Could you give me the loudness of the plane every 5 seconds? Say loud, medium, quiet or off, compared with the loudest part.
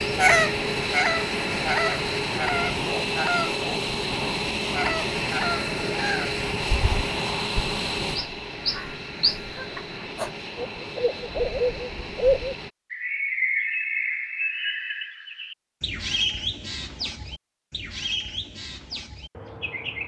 loud, loud, medium, off.